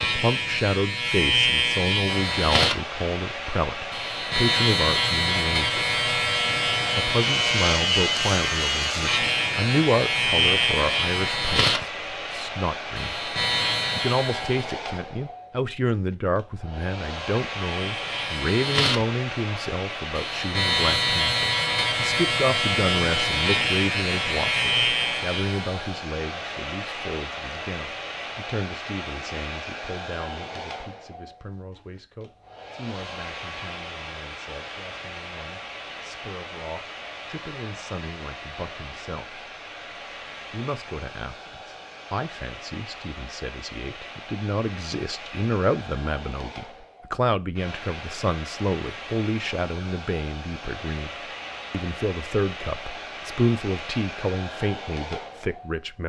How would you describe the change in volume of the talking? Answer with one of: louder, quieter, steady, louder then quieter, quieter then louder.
quieter then louder.